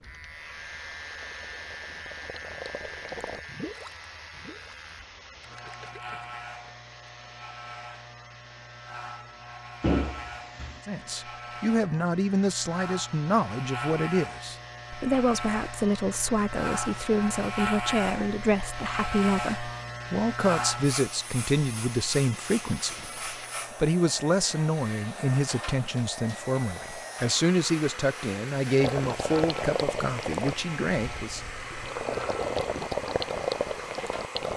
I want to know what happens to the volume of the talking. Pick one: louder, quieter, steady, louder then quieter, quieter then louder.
steady.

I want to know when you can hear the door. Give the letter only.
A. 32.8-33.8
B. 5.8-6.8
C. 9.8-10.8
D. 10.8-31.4
C.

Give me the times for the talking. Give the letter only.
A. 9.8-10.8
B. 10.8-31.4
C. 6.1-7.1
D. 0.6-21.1
B.